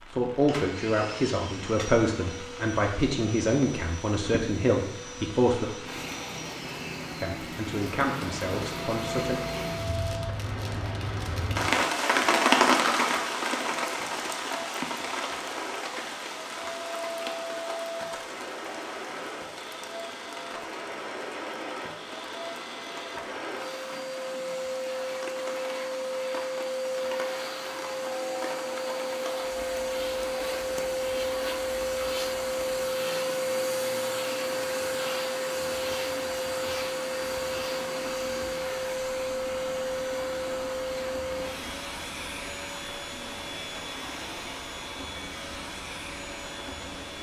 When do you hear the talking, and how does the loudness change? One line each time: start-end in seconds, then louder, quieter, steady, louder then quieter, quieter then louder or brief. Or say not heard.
0.1-5.7 steady
7.2-9.4 brief.